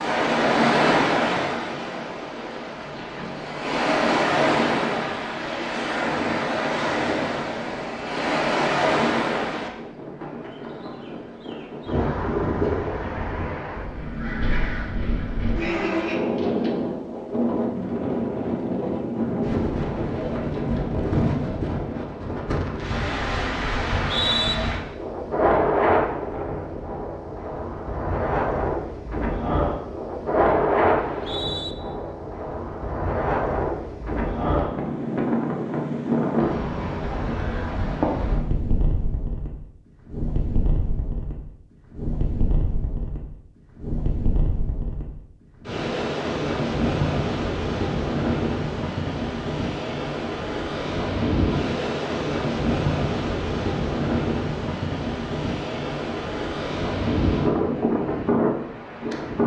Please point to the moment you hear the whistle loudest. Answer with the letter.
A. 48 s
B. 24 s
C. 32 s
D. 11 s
B.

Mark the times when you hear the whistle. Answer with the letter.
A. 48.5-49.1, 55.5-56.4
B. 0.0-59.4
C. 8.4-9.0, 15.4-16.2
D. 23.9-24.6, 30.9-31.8
D.